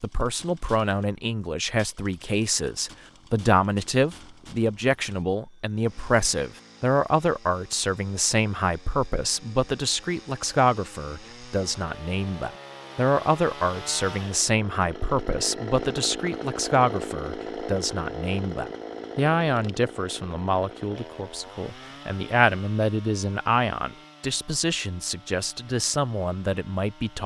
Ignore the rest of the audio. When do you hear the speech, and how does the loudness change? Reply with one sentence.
You can hear the speech from 0.0 to 27.2 s, at a steady volume.